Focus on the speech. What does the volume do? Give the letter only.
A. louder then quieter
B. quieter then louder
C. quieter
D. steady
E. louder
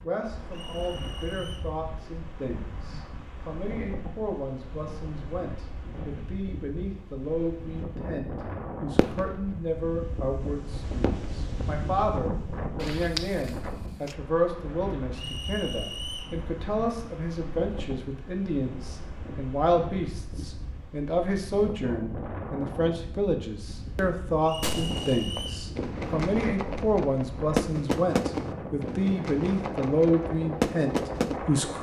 E.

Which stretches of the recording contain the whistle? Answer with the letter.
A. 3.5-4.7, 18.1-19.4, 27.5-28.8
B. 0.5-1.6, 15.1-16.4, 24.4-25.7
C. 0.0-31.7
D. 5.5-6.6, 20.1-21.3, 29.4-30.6
B.